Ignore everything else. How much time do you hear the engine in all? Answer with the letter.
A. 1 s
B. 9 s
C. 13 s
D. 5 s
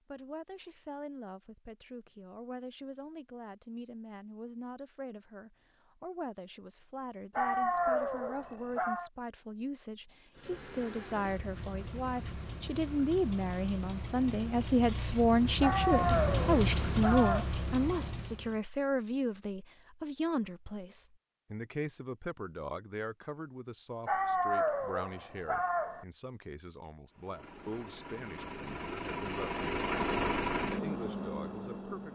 C.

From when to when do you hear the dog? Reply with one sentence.
The dog can be heard from 7.3 to 9.1 s, from 15.6 to 17.4 s and from 24.1 to 26.1 s.